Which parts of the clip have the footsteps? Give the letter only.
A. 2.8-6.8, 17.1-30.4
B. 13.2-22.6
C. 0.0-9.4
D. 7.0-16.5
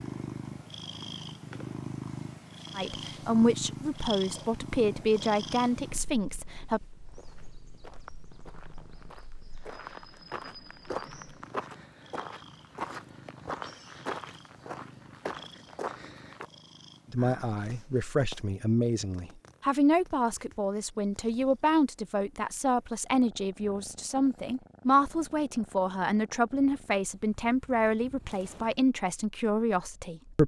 D.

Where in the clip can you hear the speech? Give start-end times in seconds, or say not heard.
2.8-6.8, 17.1-30.4.